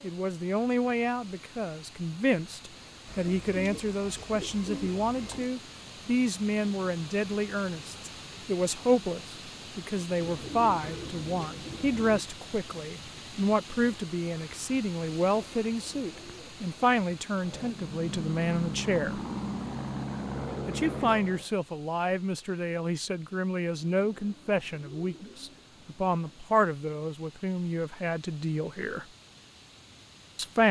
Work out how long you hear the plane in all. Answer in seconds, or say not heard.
4 s.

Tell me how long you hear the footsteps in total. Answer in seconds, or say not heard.
not heard.